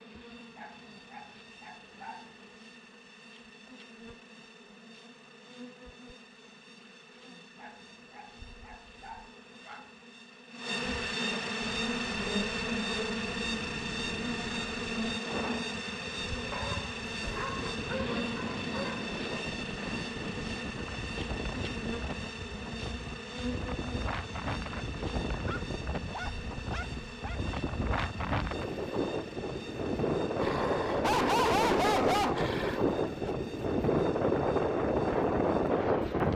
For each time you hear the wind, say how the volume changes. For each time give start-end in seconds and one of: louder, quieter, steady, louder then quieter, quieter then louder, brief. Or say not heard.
11.6-36.3 louder.